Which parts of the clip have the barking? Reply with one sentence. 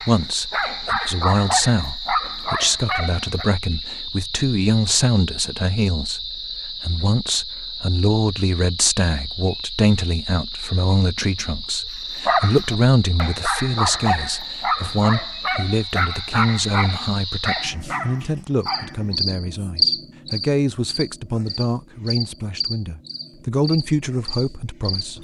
The barking can be heard from 0.0 to 3.5 s and from 12.2 to 19.1 s.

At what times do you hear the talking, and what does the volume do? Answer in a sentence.
You can hear the talking from 0.1 to 25.1 s, at a steady volume.